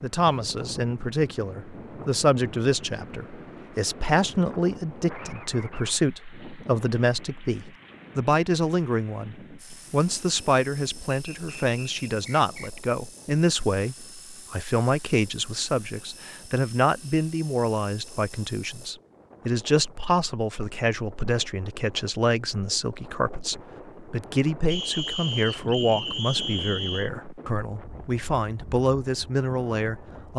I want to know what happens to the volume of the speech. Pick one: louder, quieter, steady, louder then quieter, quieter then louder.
steady.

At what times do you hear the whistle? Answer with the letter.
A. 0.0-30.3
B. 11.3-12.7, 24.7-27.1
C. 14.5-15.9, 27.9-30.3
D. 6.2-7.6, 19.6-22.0
B.